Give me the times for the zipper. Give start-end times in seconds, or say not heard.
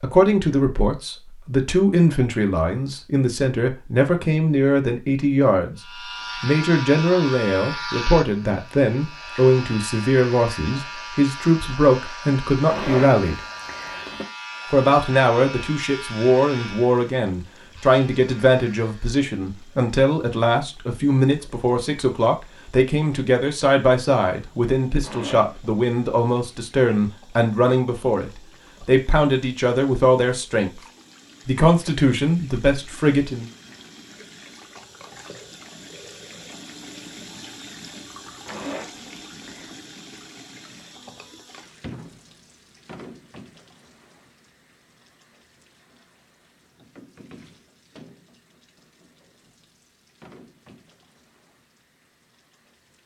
12.7-14.2, 25.0-25.7, 38.5-39.7.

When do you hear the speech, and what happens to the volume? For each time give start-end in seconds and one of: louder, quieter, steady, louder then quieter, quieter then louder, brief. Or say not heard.
0.0-13.4 steady
14.7-30.8 steady
31.4-33.5 brief.